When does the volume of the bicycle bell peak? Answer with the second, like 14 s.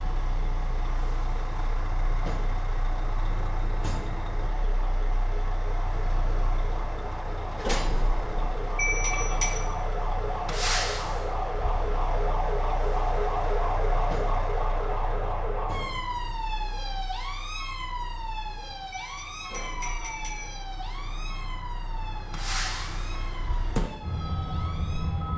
9 s.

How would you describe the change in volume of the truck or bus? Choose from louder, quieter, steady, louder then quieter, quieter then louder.
quieter then louder.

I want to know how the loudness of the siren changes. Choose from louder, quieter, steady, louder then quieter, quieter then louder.
louder then quieter.